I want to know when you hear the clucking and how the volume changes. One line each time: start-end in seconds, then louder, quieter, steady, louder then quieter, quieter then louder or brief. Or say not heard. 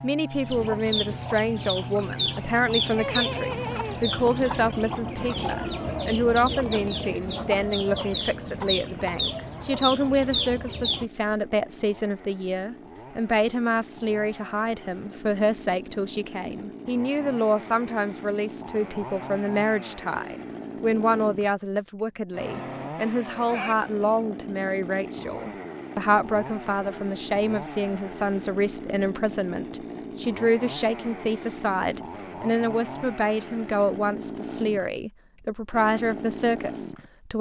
0.3-11.1 steady.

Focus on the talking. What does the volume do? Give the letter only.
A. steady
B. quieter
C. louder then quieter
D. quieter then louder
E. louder
A.